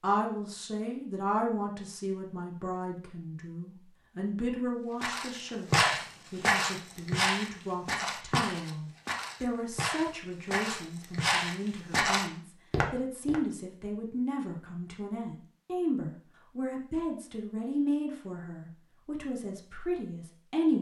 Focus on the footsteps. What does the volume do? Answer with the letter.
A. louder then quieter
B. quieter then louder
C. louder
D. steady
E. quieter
B.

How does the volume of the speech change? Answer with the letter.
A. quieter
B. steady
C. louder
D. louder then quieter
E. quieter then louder
B.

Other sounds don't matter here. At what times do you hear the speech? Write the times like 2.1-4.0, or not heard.
0.0-20.7.